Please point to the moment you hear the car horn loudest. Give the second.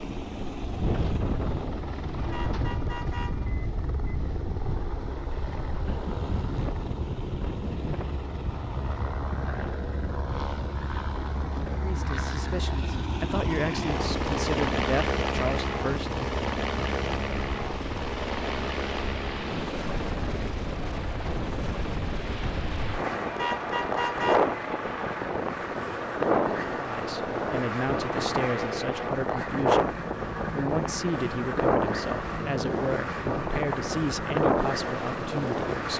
24 s.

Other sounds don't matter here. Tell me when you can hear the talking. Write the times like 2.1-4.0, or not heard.
11.8-16.1, 26.7-35.9.